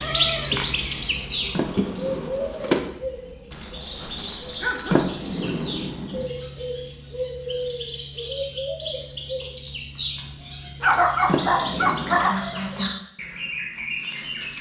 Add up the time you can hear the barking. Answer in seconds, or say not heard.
3 s.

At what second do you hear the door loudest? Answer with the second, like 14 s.
5 s.